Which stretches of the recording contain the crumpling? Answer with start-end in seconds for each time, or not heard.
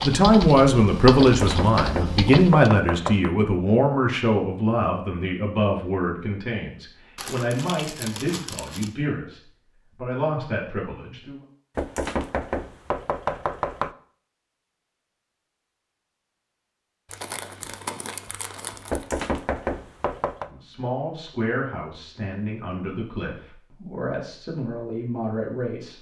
7.2-8.9, 17.1-19.1.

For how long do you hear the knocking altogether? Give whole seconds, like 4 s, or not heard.
6 s.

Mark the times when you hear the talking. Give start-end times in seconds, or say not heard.
0.0-11.4, 20.4-25.9.